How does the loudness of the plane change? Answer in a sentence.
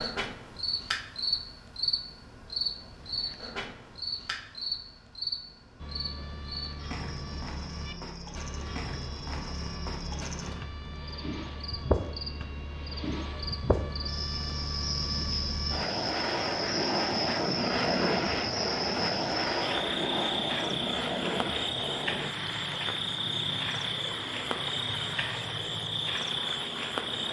The loudness of the plane goes up, then down.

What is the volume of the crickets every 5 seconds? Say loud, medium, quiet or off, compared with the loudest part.
loud, medium, loud, loud, loud, loud.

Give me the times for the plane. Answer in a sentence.
The plane can be heard from 5.8 to 27.2 s.